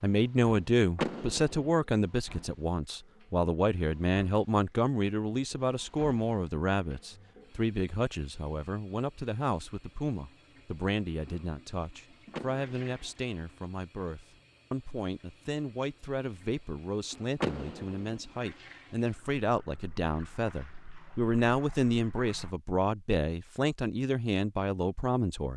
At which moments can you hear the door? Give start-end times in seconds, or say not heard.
0.9-1.8, 12.3-13.1, 17.4-18.1.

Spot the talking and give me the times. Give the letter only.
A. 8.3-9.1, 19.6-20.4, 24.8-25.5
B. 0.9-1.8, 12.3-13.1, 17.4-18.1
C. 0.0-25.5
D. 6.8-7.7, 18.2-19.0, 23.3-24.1
C.